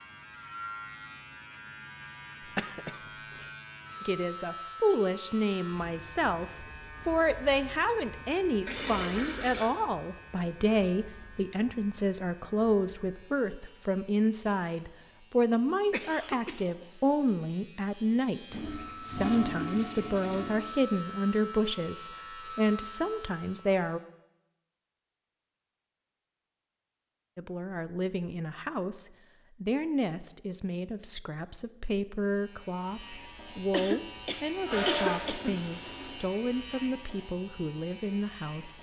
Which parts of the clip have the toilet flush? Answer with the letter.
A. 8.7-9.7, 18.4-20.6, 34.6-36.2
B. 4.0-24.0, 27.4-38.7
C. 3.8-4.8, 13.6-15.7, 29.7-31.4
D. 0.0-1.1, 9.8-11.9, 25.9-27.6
A.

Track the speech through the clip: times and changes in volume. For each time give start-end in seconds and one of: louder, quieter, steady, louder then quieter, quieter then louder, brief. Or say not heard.
4.0-24.0 steady
27.4-38.7 steady.